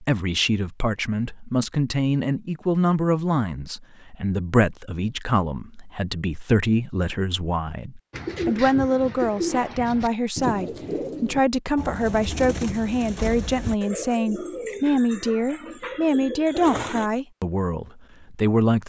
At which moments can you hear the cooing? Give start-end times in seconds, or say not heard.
8.1-17.1.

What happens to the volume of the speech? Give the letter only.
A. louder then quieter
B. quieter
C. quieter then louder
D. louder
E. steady
E.